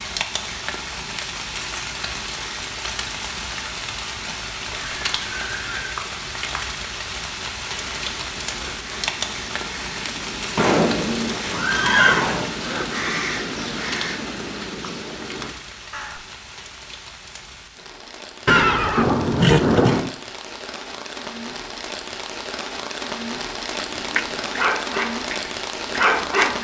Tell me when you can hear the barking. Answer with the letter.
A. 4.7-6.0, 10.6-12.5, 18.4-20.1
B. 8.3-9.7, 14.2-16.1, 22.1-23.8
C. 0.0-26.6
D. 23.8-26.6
D.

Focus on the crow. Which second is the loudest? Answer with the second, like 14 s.
13 s.